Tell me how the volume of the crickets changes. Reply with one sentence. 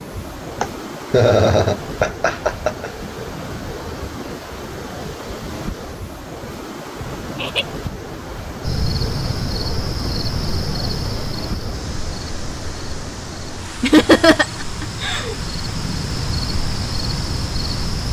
The volume of the crickets goes down, then up.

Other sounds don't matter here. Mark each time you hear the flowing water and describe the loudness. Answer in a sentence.
The flowing water can be heard from 0.0 to 18.0 s, at a steady volume.